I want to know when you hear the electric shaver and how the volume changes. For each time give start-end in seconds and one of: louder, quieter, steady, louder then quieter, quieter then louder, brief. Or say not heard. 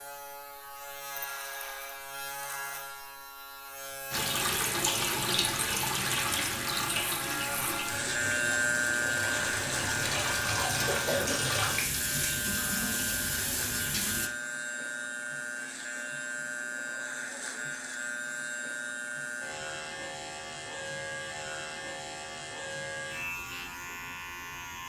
0.0-24.8 louder then quieter.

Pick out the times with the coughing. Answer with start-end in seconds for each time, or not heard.
10.8-11.4.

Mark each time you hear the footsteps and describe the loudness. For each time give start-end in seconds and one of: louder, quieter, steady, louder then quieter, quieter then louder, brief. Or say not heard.
not heard.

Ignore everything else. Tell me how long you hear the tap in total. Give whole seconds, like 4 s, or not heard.
10 s.